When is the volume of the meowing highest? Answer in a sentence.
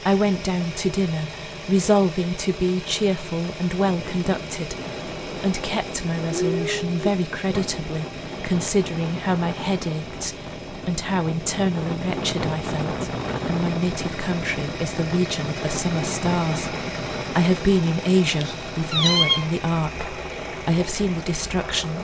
The loudest moment of the meowing is at 19 seconds.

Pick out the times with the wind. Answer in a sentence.
You can hear the wind from 3.7 to 21.9 s.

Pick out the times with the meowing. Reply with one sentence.
The meowing can be heard from 6.3 to 7.7 s and from 18.4 to 19.5 s.